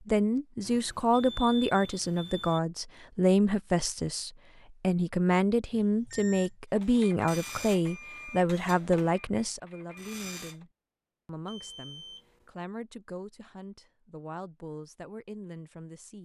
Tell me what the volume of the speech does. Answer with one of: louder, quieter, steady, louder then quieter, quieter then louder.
quieter.